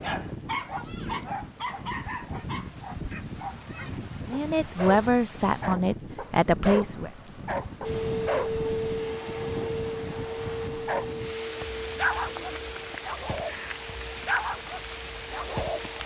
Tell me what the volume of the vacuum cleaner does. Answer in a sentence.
The volume of the vacuum cleaner goes down.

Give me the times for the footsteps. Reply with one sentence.
You can't hear the footsteps here.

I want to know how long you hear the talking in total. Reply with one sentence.
You can hear the talking for 3 seconds altogether.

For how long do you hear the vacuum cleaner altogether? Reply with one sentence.
The vacuum cleaner can be heard for 8 seconds in total.